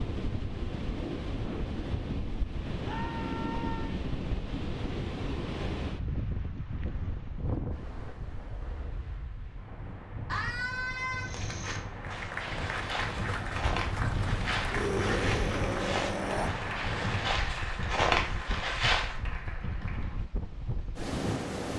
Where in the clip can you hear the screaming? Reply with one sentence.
The screaming can be heard from 2.9 to 4.0 s, from 10.2 to 11.3 s and from 14.7 to 16.5 s.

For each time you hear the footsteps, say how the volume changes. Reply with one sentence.
The footsteps can be heard from 11.2 to 19.1 s, getting louder.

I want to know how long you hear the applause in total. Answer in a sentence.
You can hear the applause for 8 seconds altogether.